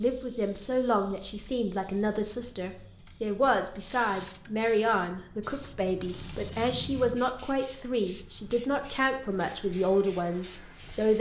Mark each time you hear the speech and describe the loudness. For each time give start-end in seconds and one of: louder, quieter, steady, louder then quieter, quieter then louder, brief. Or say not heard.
0.0-11.1 steady.